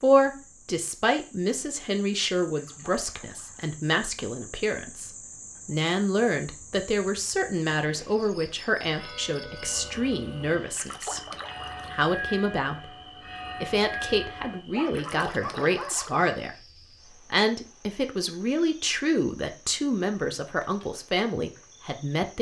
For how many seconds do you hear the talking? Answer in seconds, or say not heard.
20 s.